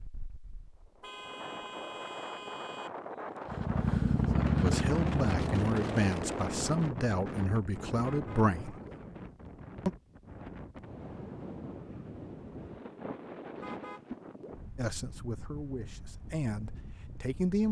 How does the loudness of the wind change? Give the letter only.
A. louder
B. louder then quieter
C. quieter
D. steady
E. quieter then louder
B.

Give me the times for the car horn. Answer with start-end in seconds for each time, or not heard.
1.0-2.9, 8.1-8.9, 13.6-14.6.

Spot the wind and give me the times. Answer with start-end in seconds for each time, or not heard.
0.0-17.6.